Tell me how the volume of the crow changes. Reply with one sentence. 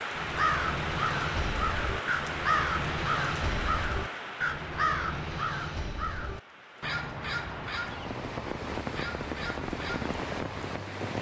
The volume of the crow goes down.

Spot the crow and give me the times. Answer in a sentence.
You can hear the crow from 0.1 to 10.8 s.